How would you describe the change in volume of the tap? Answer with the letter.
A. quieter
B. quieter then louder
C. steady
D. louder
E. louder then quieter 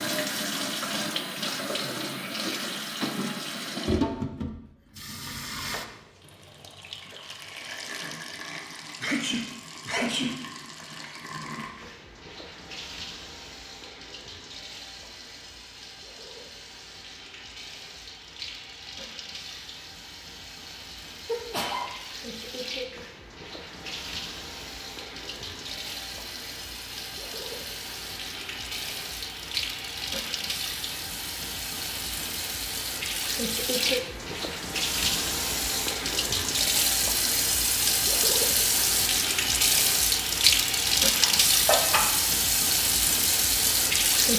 B.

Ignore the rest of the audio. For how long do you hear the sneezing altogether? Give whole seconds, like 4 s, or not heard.
3 s.